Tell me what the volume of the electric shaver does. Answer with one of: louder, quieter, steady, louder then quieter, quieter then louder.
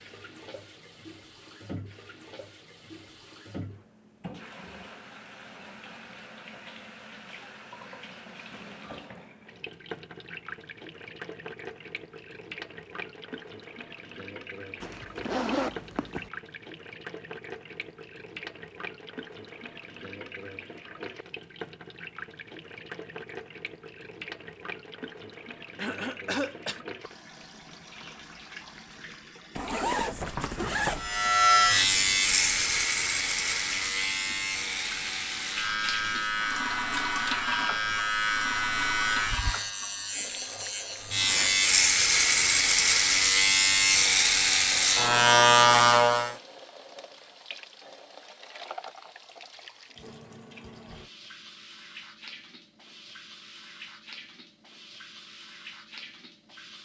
quieter then louder.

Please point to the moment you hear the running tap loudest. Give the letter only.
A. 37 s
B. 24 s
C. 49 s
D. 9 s
A.